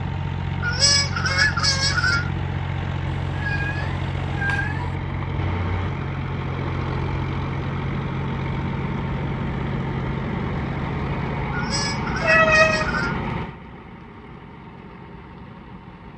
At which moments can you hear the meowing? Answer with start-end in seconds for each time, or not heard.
3.0-5.0, 12.2-13.0.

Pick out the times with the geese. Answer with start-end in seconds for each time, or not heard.
0.6-2.3, 11.5-13.2.